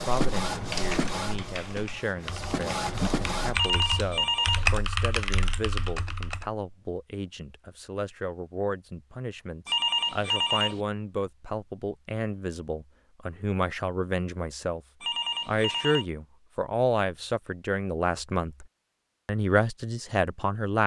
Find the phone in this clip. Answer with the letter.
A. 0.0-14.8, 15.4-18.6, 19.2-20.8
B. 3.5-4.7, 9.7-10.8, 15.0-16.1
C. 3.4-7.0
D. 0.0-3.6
B.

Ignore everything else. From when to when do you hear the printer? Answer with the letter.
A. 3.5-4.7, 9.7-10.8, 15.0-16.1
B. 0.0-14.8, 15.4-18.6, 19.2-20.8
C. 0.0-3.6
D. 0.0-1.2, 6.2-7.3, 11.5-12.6
C.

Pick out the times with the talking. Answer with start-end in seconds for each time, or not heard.
0.0-14.8, 15.4-18.6, 19.2-20.8.